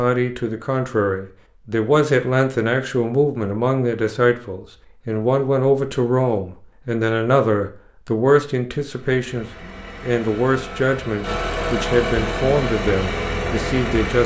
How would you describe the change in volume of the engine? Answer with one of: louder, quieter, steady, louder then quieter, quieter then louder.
louder.